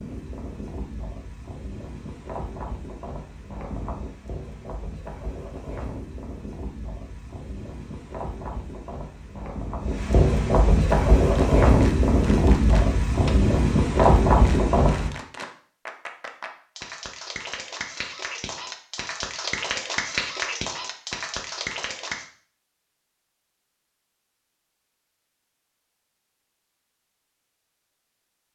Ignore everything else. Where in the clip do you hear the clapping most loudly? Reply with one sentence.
The loudest moment of the clapping is at 20 seconds.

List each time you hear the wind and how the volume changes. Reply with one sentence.
The wind can be heard from 0.0 to 15.1 s, getting louder.